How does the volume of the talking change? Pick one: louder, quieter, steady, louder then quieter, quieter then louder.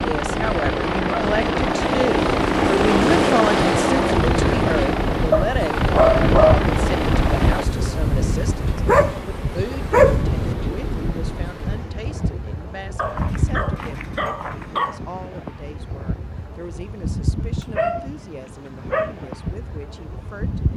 quieter.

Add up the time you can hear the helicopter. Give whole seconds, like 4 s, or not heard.
8 s.